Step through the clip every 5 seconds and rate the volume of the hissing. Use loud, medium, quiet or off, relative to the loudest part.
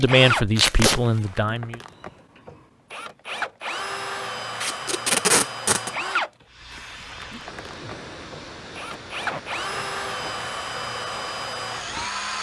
off, loud, loud.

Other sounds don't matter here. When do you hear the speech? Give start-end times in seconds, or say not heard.
0.0-1.8.